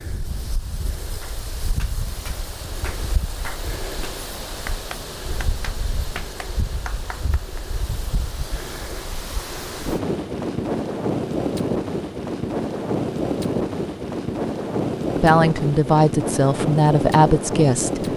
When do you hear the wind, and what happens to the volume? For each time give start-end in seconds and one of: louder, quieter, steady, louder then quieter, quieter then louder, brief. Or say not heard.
0.0-18.1 louder.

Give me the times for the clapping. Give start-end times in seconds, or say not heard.
1.2-7.7.